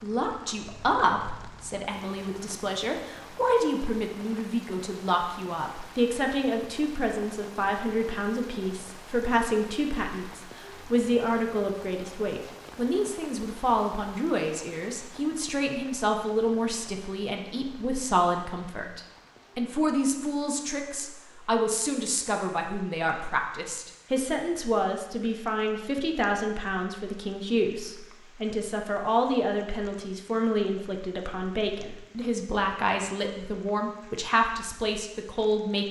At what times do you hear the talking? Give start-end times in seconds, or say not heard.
0.0-35.8.